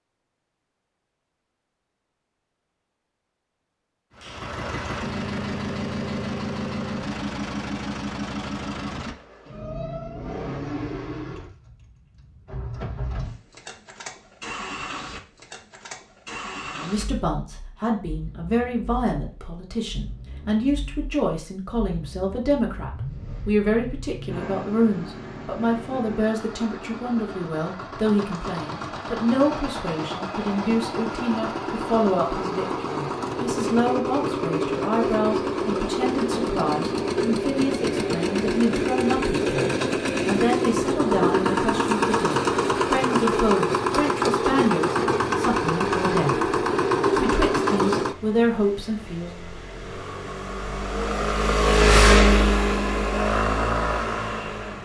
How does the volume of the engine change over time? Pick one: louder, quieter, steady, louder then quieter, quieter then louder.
quieter then louder.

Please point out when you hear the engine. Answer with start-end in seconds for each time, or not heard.
4.2-54.8.